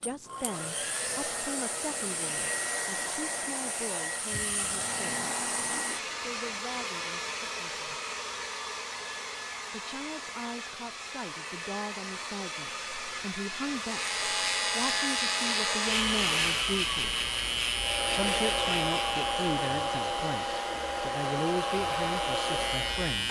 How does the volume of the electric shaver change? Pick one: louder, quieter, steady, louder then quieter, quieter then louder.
quieter.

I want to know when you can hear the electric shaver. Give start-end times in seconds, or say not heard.
13.8-23.2.